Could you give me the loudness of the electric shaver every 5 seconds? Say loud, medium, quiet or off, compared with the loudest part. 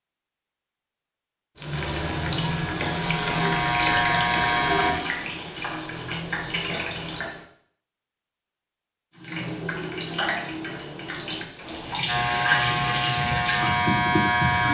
loud, off, loud.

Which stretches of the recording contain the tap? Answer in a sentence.
The tap can be heard from 1.6 to 7.5 s and from 9.2 to 14.7 s.